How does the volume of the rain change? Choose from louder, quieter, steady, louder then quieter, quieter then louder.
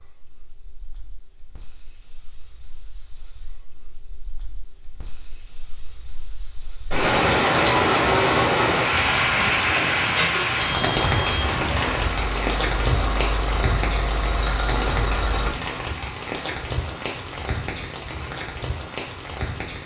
louder then quieter.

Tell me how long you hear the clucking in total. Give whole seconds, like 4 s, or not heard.
not heard.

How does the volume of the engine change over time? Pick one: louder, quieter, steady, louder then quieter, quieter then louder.
steady.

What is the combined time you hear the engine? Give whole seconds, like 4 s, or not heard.
7 s.